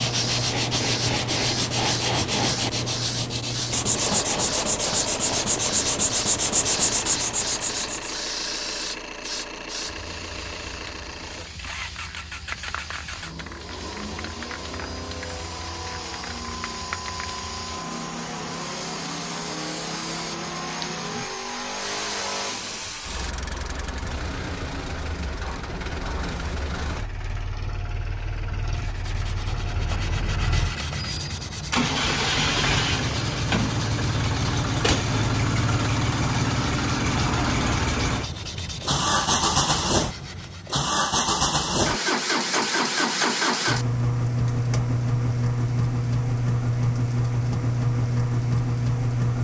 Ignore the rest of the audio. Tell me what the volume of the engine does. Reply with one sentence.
The loudness of the engine goes up.